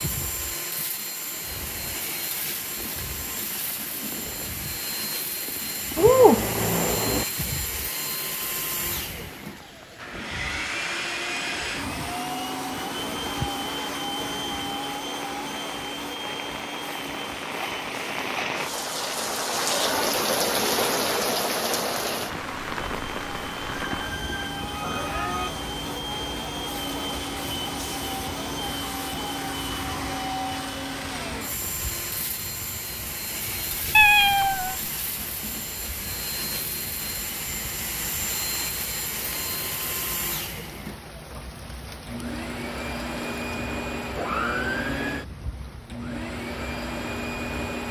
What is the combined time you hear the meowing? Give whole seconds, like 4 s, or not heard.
4 s.